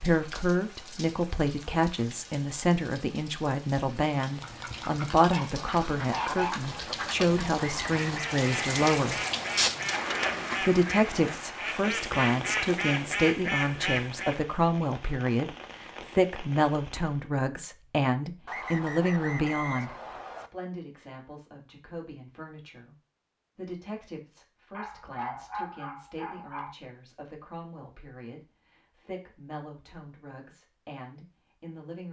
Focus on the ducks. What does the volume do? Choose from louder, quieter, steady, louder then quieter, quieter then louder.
louder.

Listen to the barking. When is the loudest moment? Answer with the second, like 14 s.
6 s.